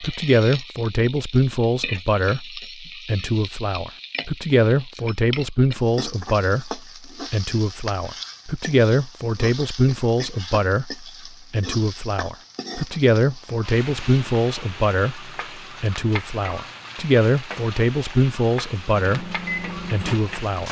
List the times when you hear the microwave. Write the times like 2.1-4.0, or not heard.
18.9-20.6.